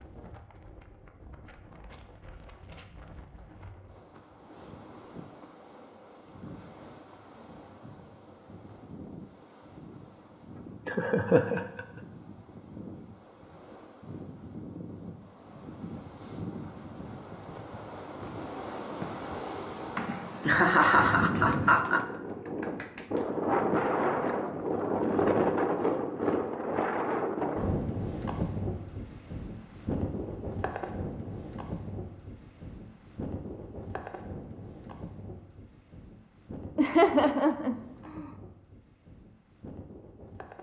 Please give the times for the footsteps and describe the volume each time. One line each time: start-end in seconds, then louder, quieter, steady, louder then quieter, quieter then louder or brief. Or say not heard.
not heard.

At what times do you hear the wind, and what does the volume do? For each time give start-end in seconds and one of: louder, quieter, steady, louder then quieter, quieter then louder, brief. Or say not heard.
0.0-40.5 louder then quieter.